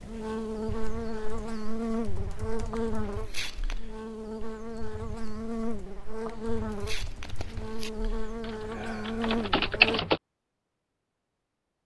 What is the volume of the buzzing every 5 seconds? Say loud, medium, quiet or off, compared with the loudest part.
loud, loud, off.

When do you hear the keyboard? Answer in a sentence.
You can hear the keyboard from 0.7 to 10.2 s.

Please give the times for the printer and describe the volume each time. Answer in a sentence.
The printer can't be heard in this clip.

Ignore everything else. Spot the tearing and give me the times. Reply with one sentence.
The tearing can be heard from 2.7 to 3.8 s and from 6.2 to 7.9 s.